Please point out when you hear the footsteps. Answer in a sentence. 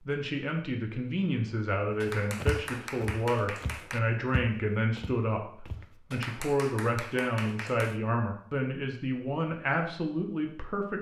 You can hear the footsteps from 2.4 to 5.8 s.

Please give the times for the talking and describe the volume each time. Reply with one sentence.
You can hear the talking from 0.1 to 10.9 s, at a steady volume.